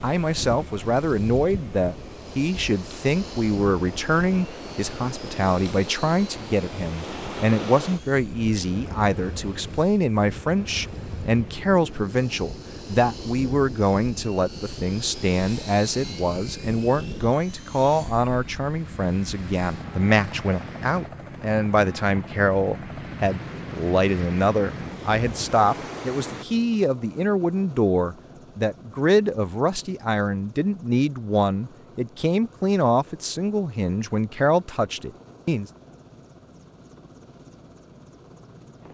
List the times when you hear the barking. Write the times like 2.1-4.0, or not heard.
not heard.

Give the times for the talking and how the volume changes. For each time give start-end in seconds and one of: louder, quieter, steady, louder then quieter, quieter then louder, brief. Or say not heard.
0.0-35.6 steady.